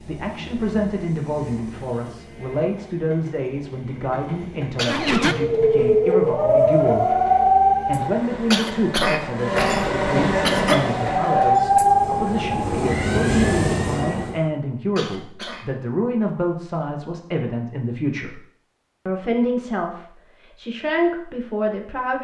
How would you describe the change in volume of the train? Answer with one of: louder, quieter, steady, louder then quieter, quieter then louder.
louder.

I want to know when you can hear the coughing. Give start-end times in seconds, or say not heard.
4.8-5.4, 8.5-10.8, 14.9-15.7.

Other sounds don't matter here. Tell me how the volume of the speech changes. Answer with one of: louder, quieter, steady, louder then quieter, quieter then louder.
steady.